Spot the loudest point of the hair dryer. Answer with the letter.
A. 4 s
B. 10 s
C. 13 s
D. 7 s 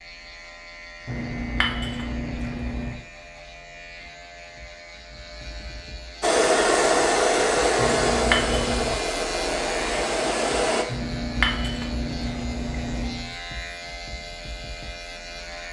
D.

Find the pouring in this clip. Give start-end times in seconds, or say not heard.
1.1-3.0, 7.8-8.9, 10.8-13.3.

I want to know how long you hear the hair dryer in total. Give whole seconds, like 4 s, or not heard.
5 s.